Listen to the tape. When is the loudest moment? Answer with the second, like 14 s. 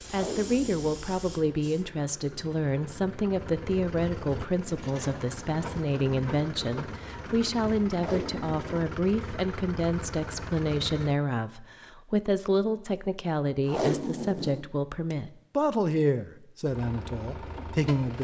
14 s.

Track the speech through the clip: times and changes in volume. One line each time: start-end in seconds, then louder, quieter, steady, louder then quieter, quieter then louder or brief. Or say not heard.
0.1-18.1 steady.